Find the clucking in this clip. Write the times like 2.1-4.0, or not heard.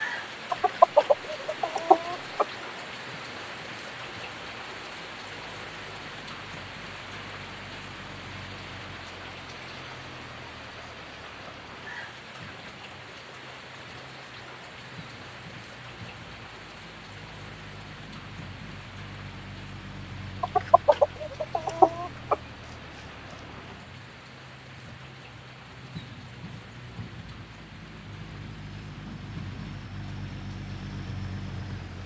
0.5-2.5, 20.4-22.4.